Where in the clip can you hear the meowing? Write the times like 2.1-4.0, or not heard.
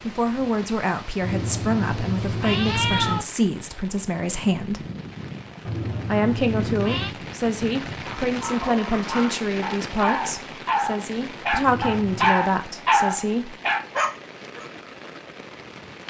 1.2-3.2, 5.7-7.2, 11.6-12.4.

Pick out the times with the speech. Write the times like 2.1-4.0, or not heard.
0.0-4.8, 6.0-13.6.